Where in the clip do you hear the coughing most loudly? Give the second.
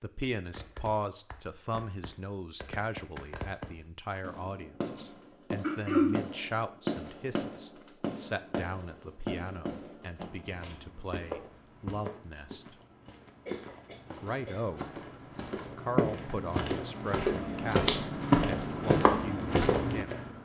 6 s.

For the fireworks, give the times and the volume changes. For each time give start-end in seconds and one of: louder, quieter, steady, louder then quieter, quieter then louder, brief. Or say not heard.
0.5-10.3 louder.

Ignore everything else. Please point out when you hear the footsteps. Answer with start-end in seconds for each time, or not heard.
9.8-20.4.